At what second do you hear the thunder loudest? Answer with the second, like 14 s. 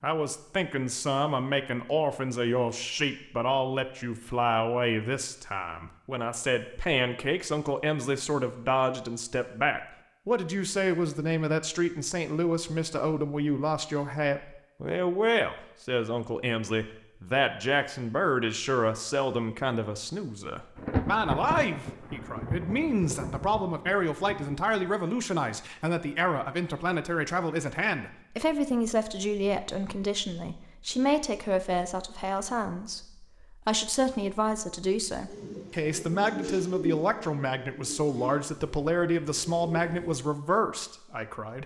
21 s.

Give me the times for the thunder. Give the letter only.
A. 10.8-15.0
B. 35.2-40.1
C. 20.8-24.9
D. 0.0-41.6
C.